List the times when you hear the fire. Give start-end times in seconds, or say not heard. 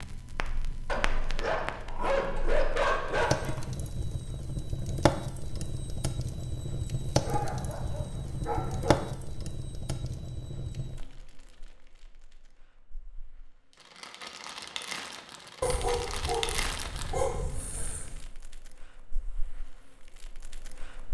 0.0-21.0.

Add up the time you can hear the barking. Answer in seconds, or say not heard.
7 s.